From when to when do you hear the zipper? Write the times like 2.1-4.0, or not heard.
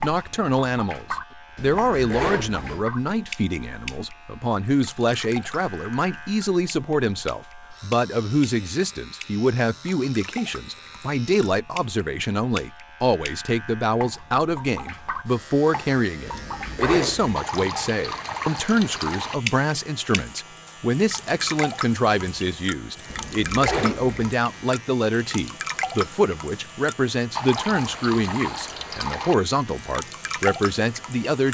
1.6-2.9, 16.2-17.4, 23.1-24.4.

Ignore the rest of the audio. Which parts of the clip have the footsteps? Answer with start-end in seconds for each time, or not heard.
not heard.